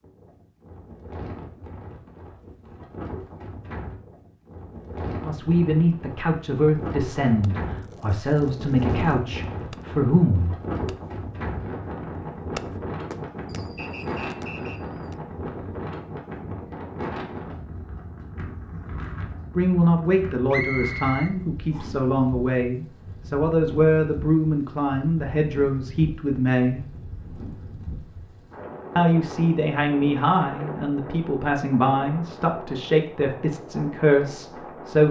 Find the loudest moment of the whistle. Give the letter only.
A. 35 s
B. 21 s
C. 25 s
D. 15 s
B.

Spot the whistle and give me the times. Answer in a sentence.
The whistle can be heard from 13.8 to 14.8 s and from 20.5 to 21.9 s.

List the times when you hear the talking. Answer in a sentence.
The talking can be heard from 5.2 to 10.6 s, from 19.6 to 26.8 s and from 28.9 to 35.0 s.